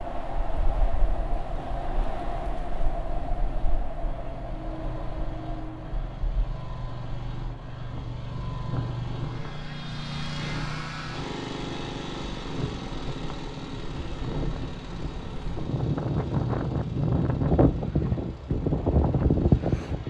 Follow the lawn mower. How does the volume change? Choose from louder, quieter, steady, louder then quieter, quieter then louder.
louder then quieter.